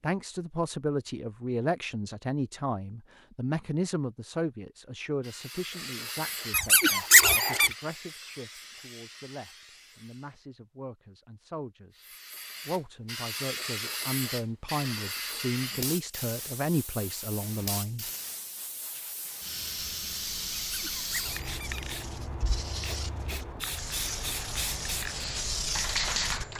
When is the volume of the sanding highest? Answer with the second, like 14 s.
26 s.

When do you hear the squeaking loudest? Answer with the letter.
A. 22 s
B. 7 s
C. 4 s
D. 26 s
B.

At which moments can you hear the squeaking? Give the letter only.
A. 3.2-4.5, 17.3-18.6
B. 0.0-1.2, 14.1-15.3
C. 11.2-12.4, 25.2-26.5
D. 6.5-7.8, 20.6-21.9
D.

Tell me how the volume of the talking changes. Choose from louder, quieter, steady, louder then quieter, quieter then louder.
quieter then louder.